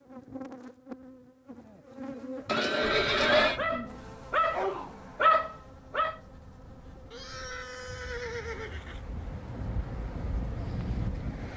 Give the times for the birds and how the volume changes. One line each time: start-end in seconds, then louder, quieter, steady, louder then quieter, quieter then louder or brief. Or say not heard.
not heard.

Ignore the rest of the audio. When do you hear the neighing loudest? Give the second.
3 s.